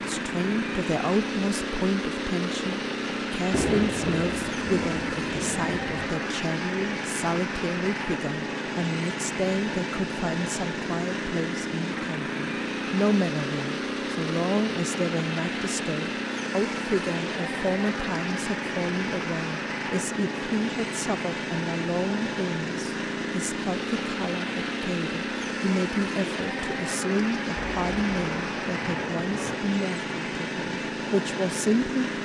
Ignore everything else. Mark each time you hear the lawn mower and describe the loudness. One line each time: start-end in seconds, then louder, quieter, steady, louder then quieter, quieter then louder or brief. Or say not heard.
0.0-32.2 steady.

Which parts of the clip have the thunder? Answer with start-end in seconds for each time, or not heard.
3.5-5.9, 27.6-29.6.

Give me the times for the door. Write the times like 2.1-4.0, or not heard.
not heard.